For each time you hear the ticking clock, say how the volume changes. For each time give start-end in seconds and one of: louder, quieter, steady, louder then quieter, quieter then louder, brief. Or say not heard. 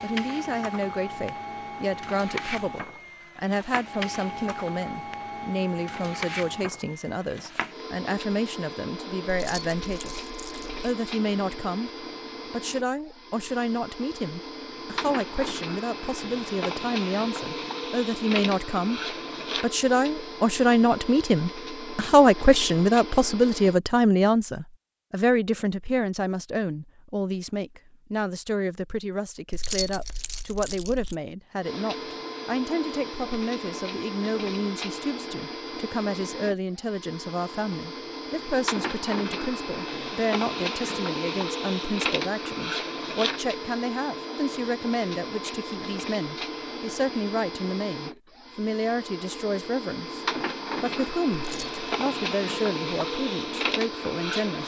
not heard.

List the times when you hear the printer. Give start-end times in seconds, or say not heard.
0.0-23.8, 31.6-54.6.